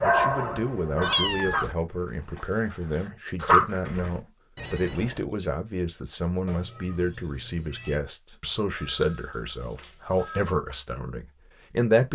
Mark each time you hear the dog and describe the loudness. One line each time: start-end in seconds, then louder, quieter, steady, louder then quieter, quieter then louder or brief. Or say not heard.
0.0-4.1 quieter then louder.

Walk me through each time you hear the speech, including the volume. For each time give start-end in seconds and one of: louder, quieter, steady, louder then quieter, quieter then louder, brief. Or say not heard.
0.0-12.0 steady.